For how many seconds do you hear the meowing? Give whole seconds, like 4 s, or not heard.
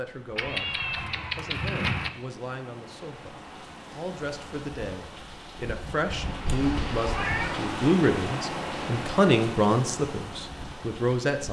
3 s.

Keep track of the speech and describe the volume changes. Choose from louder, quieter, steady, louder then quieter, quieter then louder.
louder.